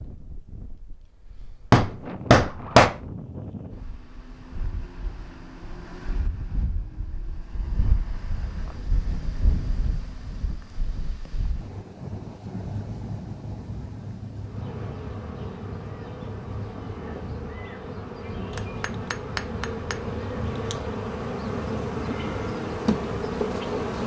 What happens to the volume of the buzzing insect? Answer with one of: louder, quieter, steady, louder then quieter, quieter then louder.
louder.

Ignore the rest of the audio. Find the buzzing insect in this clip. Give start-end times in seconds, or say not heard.
14.4-24.0.